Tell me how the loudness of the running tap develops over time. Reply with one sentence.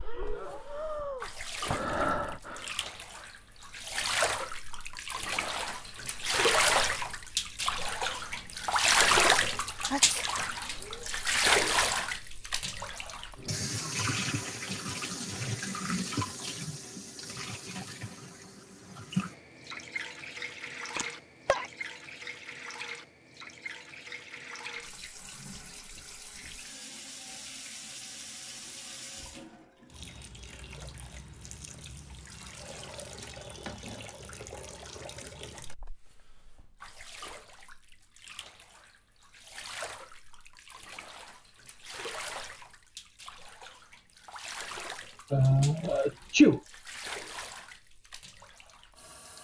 The volume of the running tap goes down.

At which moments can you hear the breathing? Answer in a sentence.
The breathing can be heard from 0.0 to 2.7 s.